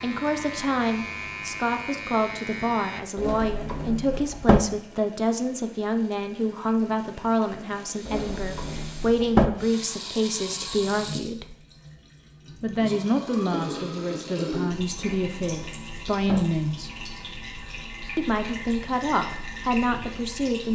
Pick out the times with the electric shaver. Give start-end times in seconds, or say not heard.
0.0-3.0.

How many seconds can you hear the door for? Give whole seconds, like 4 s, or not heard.
4 s.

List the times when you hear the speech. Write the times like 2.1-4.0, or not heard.
0.0-11.6, 12.6-16.9, 18.1-20.7.